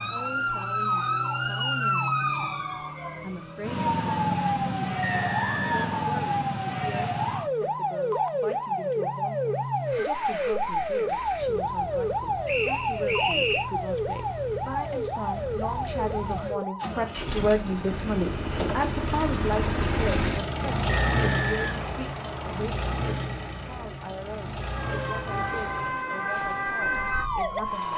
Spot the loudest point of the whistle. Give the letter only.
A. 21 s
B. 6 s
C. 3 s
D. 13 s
D.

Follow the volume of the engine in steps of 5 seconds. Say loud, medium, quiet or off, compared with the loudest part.
medium, medium, medium, loud, loud, medium.